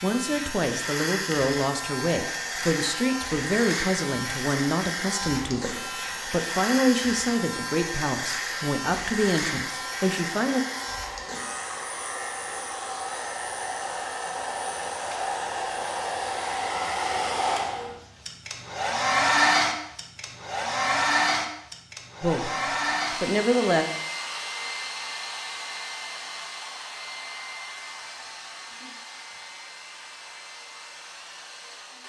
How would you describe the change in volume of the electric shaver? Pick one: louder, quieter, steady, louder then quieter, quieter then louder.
quieter.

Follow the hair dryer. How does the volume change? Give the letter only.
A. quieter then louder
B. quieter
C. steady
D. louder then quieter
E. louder
D.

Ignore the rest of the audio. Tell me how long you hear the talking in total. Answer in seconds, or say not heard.
12 s.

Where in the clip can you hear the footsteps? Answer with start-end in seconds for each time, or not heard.
not heard.